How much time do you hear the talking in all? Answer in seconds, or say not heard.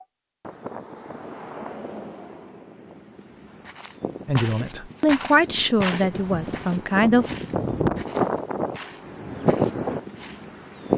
3 s.